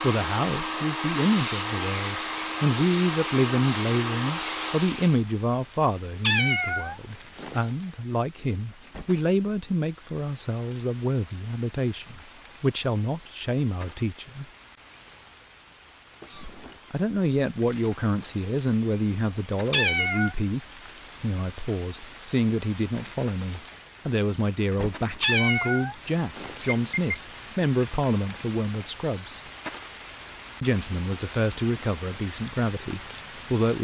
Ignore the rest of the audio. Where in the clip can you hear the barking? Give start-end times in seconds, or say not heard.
not heard.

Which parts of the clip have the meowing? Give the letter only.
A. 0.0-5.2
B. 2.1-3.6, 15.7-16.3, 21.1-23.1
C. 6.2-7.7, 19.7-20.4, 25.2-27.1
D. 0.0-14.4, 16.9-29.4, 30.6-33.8
C.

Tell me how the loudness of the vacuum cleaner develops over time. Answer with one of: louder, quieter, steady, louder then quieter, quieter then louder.
steady.